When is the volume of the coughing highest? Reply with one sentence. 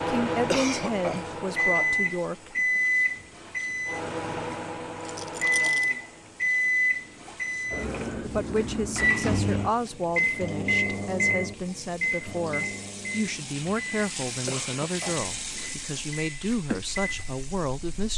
The volume of the coughing peaks at 1 second.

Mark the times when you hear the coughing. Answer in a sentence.
You can hear the coughing from 0.5 to 1.4 s and from 14.4 to 15.8 s.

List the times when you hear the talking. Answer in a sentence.
The talking can be heard from 0.1 to 2.8 s and from 8.2 to 18.1 s.